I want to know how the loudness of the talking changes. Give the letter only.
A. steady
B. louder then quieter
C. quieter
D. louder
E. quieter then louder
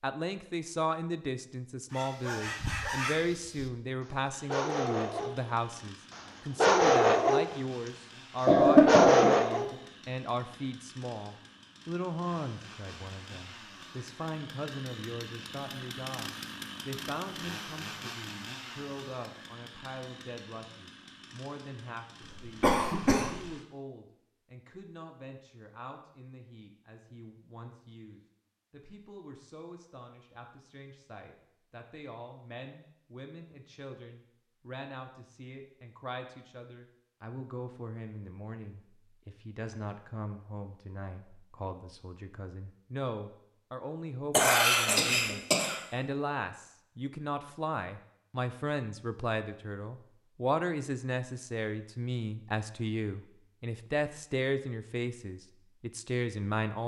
E.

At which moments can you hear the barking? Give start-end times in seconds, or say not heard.
1.9-5.4, 6.1-7.5, 8.4-9.7.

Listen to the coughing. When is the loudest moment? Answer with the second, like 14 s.
9 s.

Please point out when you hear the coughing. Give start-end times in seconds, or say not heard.
8.4-9.8, 22.2-23.4, 44.3-45.8.